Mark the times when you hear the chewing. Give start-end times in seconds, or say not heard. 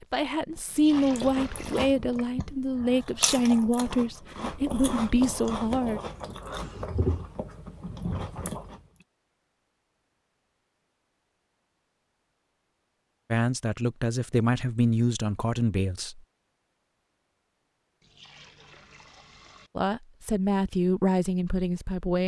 0.9-8.8.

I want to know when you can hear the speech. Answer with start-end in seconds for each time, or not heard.
0.0-6.0, 13.3-16.2, 19.8-22.2.